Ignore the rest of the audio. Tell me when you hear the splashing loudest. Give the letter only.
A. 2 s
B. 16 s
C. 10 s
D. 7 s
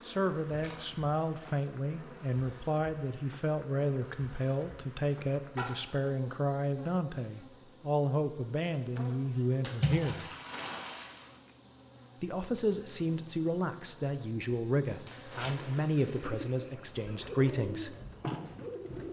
C.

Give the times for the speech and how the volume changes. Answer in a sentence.
You can hear the speech from 0.0 to 10.2 s, at a steady volume; and from 12.2 to 17.9 s, at a steady volume.